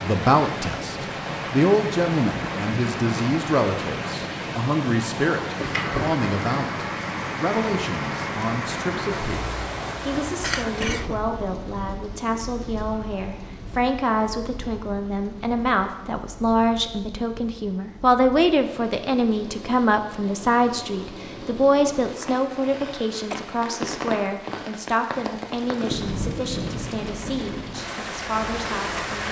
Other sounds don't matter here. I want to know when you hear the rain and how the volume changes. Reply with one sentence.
You can hear the rain from 0.0 to 29.2 s, getting quieter then louder.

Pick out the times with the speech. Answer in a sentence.
The speech can be heard from 0.0 to 29.2 s.